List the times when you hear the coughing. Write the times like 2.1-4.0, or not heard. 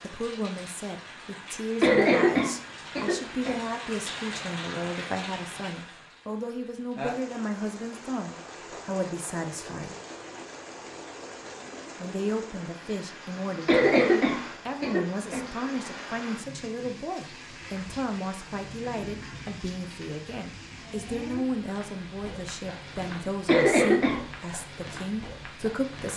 1.8-3.6, 13.7-15.4, 23.4-24.2.